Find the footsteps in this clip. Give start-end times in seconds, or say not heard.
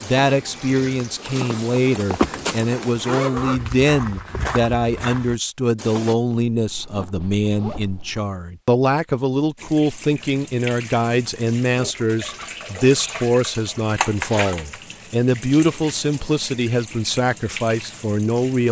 0.0-6.2.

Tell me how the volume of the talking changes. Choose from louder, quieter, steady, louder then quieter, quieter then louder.
steady.